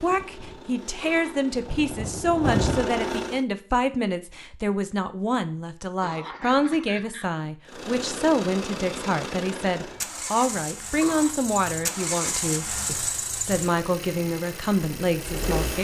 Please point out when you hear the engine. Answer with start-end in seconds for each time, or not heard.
0.0-3.4, 7.7-15.7.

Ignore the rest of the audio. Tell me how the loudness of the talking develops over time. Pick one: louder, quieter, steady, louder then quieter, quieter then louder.
steady.